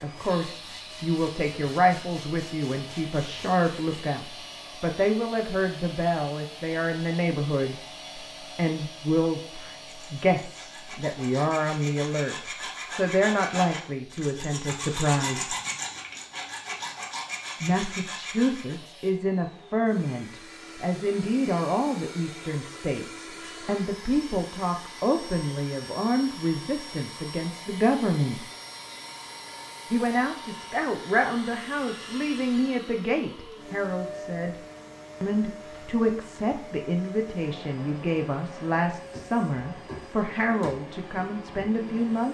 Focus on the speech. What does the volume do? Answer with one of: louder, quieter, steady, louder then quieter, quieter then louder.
steady.